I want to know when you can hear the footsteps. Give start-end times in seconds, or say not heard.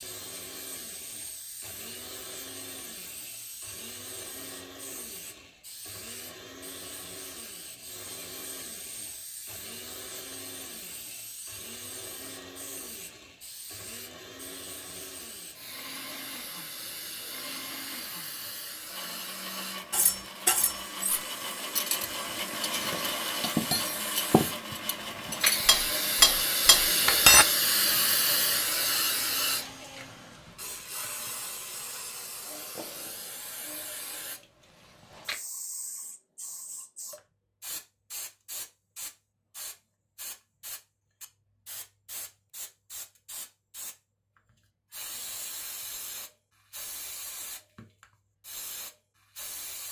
not heard.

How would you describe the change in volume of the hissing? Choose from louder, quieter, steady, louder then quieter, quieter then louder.
louder then quieter.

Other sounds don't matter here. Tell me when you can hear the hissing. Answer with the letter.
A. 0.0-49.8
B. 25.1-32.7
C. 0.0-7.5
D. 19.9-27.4
A.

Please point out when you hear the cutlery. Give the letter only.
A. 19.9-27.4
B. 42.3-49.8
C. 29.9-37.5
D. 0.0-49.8
A.